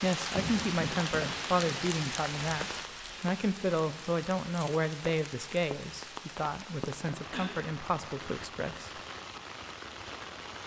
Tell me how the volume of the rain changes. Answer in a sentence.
The loudness of the rain goes down.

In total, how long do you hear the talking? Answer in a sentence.
You can hear the talking for 9 seconds altogether.